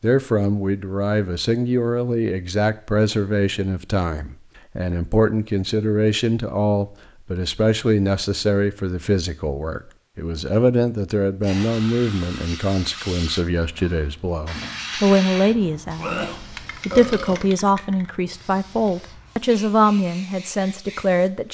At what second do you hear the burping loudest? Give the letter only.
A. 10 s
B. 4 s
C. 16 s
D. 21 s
C.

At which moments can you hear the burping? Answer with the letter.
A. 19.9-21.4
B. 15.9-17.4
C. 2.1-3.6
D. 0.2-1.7
B.